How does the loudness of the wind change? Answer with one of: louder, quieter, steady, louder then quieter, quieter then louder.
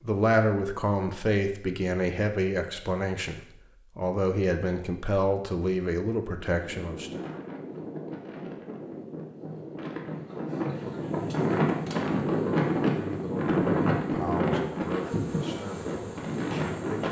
louder then quieter.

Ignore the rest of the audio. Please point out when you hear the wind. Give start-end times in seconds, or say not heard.
6.5-17.0.